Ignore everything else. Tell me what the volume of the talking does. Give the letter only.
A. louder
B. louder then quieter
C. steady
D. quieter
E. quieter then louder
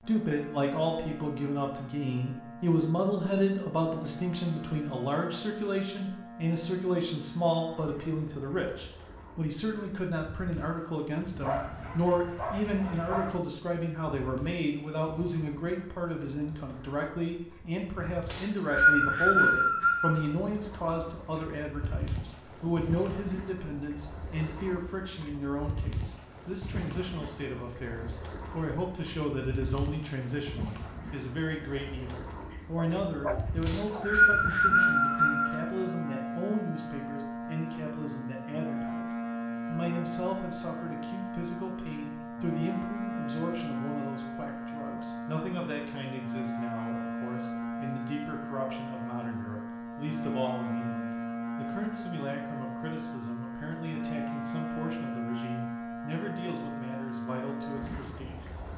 D.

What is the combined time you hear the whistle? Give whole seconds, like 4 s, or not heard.
4 s.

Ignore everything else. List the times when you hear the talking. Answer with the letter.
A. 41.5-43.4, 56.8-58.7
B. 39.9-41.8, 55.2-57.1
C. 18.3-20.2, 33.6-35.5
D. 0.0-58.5
D.